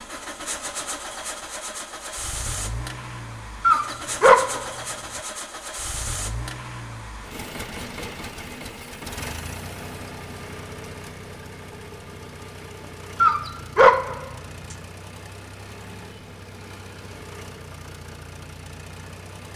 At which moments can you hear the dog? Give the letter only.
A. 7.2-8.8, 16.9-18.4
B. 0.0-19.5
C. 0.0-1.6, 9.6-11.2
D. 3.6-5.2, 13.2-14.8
D.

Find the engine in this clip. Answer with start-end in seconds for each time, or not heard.
0.0-19.5.